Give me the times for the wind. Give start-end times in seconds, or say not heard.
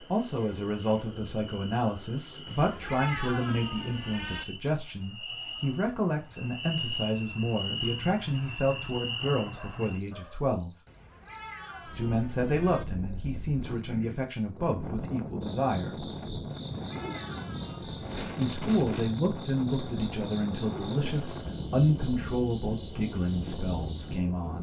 11.8-24.5.